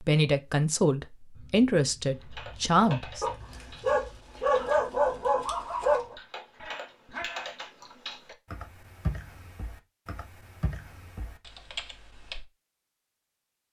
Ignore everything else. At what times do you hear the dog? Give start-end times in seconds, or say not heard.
2.8-8.0.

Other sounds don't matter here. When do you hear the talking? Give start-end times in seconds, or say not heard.
0.0-3.2.